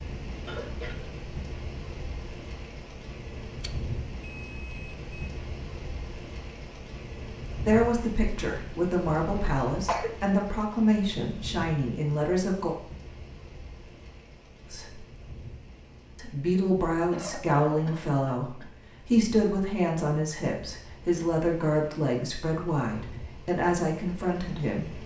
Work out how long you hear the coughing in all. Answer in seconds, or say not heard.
3 s.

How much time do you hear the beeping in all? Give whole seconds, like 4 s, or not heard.
2 s.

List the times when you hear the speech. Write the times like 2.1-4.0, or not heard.
7.6-12.8, 14.7-15.1, 16.1-25.0.